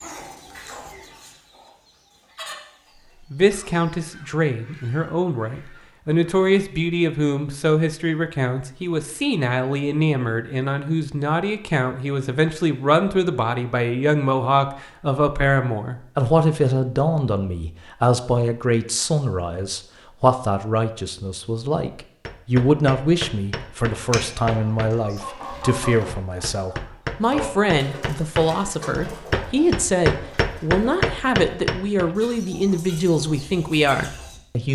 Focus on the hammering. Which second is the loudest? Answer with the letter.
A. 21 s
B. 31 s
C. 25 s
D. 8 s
B.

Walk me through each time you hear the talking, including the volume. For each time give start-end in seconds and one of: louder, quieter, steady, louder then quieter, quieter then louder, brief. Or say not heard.
3.3-34.6 steady.